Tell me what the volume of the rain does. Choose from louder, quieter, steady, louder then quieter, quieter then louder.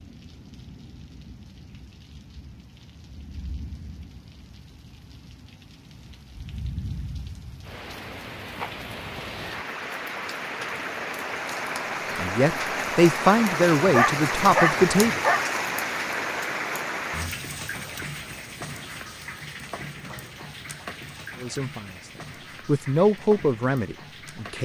louder then quieter.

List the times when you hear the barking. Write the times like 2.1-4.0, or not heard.
13.8-15.4.